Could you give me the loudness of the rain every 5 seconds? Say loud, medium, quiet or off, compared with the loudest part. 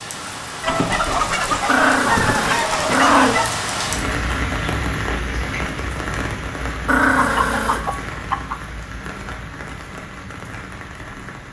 loud, loud, medium.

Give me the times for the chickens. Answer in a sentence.
You can hear the chickens from 0.6 to 3.5 s and from 7.2 to 8.6 s.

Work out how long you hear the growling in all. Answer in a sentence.
You can hear the growling for 3 seconds altogether.